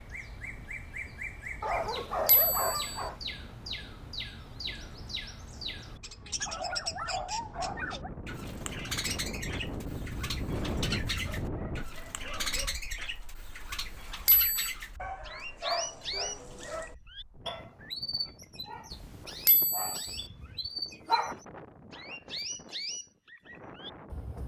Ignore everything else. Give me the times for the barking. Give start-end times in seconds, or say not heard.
1.6-3.2, 6.4-8.1, 11.2-12.8, 15.0-16.9, 20.1-21.4.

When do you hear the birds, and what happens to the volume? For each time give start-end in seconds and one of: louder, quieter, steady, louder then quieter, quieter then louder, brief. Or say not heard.
0.0-24.4 steady.